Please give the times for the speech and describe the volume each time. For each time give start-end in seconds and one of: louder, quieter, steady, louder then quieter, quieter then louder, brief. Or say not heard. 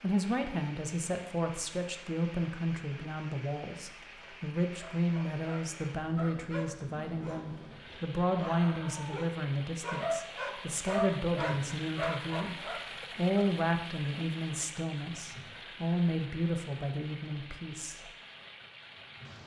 0.0-18.0 steady.